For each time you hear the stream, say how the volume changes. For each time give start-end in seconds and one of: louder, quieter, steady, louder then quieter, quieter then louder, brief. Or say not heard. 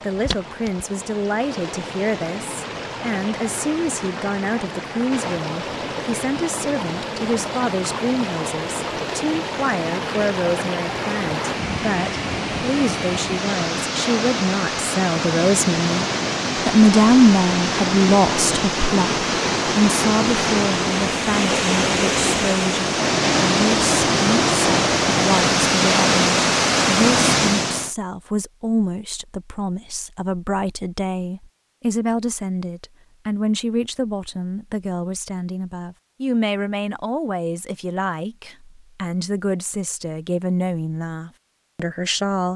0.0-27.9 louder.